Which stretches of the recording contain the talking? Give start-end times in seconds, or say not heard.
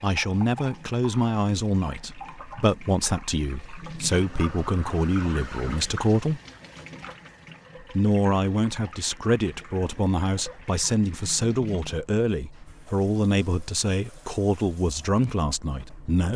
0.0-6.4, 7.8-16.3.